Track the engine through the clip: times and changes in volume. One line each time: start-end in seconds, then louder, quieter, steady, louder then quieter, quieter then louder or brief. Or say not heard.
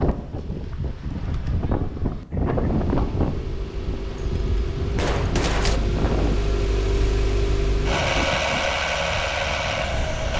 2.4-10.3 louder.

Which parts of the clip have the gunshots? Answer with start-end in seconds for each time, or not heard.
4.1-5.8.